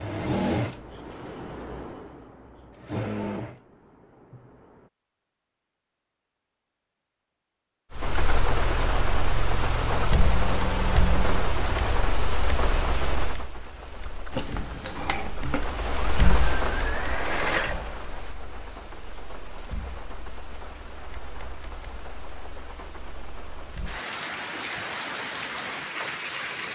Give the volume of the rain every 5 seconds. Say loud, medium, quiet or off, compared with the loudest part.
off, loud, loud, medium, medium, loud.